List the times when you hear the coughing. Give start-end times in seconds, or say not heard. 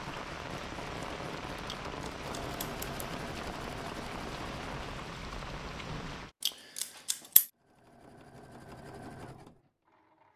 not heard.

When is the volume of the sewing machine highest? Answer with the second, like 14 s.
3 s.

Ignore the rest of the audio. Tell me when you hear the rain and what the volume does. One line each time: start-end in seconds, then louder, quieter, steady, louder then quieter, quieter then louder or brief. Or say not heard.
0.0-6.3 steady.